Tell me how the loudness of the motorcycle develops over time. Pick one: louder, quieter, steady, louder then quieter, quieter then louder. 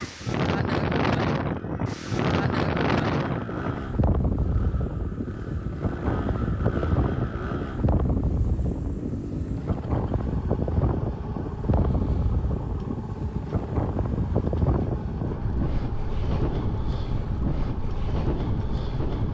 steady.